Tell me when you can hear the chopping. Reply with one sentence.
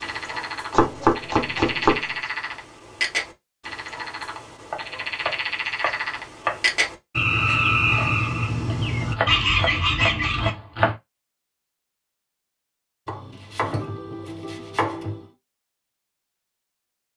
You can hear the chopping from 0.7 to 2.0 s, from 4.7 to 6.6 s, from 8.7 to 10.9 s and from 13.1 to 15.2 s.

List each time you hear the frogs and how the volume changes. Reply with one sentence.
You can hear the frogs from 0.0 to 10.5 s, getting louder.